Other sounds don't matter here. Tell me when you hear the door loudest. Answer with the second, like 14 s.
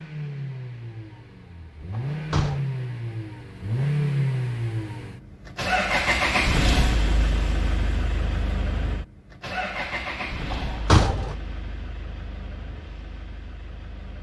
11 s.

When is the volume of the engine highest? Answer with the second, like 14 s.
6 s.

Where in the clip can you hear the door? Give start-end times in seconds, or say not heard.
1.9-2.6, 10.5-11.3.